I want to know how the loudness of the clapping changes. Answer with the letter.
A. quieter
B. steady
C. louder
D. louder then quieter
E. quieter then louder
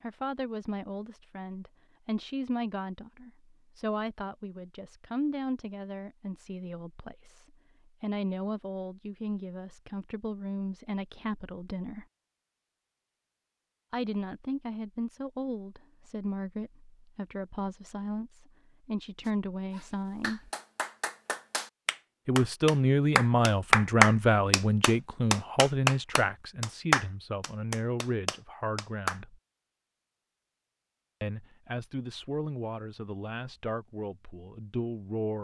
D.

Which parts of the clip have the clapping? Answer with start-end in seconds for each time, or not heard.
19.2-29.2.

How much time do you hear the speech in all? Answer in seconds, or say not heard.
30 s.